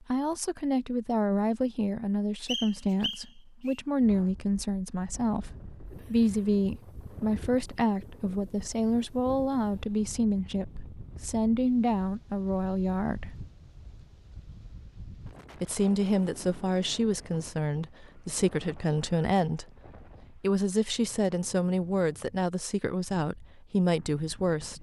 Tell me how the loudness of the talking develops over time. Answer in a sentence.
The loudness of the talking stays about the same.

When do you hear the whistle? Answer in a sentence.
The whistle can be heard from 2.5 to 3.8 s.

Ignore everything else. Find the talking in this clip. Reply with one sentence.
The talking can be heard from 0.1 to 13.3 s, from 15.6 to 19.6 s and from 20.3 to 24.7 s.